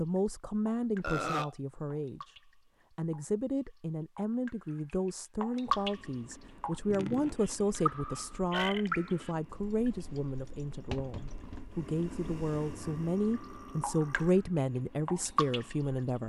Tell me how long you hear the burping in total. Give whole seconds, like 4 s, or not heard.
4 s.